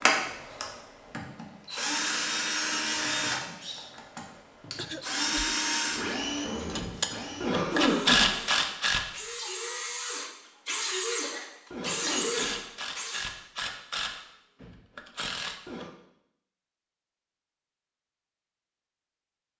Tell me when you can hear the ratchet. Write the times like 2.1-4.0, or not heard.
6.5-9.1, 11.7-15.9.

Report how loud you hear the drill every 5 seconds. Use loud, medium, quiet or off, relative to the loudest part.
loud, loud, loud, off.